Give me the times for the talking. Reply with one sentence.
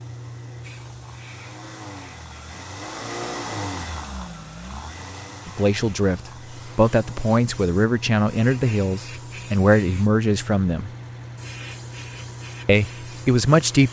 The talking can be heard from 5.5 to 10.9 s and from 12.7 to 13.8 s.